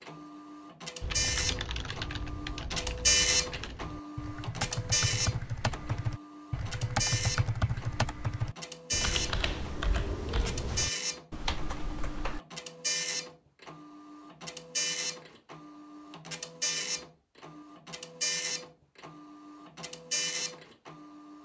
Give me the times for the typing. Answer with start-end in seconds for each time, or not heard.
1.0-12.4.